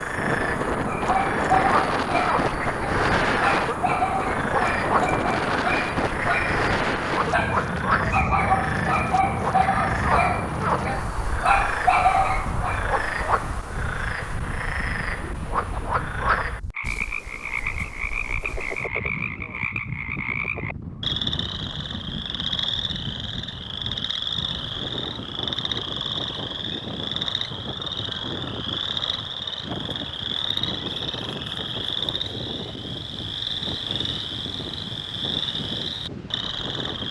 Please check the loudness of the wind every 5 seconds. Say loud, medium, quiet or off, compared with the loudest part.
loud, loud, medium, quiet, medium, medium, medium, medium.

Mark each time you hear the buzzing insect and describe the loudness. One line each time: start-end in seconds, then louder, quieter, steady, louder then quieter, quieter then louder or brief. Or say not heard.
not heard.